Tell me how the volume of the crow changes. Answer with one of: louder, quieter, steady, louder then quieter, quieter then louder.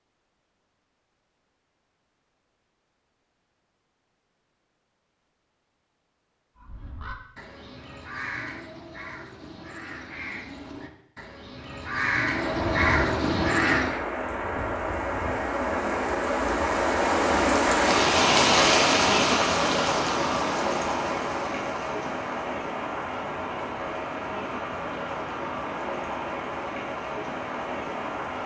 louder.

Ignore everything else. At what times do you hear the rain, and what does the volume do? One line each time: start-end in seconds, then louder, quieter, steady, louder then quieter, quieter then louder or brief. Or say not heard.
12.3-28.4 louder then quieter.